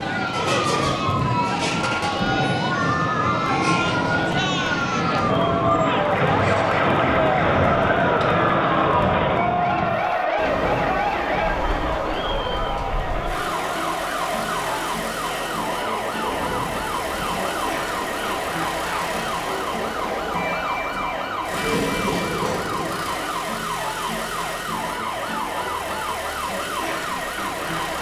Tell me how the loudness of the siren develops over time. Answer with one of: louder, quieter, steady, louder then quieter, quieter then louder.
steady.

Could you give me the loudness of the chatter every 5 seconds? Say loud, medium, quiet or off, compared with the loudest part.
medium, loud, medium, medium, quiet, quiet.